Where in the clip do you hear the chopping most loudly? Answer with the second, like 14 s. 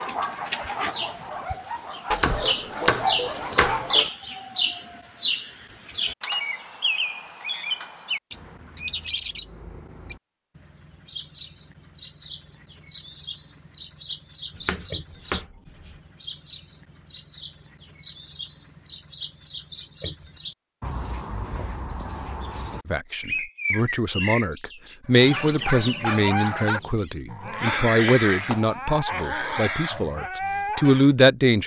3 s.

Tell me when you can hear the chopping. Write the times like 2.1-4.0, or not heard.
2.1-4.1, 14.7-15.9, 27.6-28.9.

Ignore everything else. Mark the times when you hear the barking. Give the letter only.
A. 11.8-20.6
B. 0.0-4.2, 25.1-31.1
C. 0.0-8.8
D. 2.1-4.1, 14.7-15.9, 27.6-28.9
B.